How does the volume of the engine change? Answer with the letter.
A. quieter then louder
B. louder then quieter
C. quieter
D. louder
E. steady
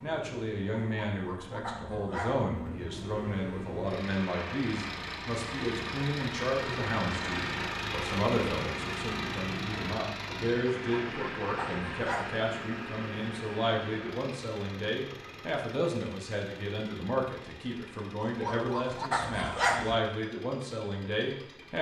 B.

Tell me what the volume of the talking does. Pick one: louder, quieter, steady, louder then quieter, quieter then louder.
steady.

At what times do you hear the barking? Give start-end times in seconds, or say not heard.
0.8-2.5, 10.8-12.3, 18.2-19.9.